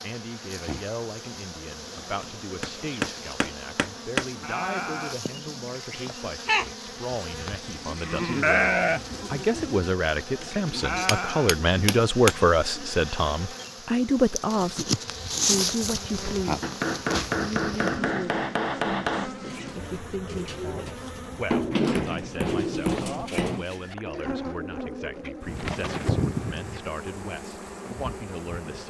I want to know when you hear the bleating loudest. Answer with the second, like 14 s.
9 s.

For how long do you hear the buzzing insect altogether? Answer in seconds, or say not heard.
29 s.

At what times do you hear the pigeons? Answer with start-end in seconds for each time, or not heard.
19.5-26.9.